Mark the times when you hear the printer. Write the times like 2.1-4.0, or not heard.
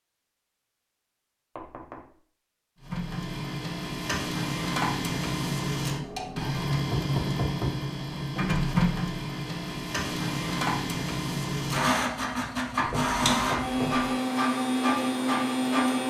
2.8-16.0.